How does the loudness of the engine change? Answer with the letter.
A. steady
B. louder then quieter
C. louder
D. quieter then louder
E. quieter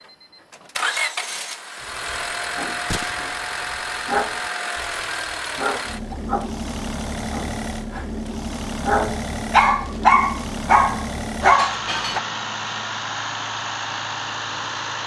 A.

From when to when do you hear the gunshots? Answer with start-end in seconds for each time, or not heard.
2.9-3.4.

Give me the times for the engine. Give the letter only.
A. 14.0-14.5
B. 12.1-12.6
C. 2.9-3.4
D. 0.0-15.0
D.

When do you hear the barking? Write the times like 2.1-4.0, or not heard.
1.8-12.2.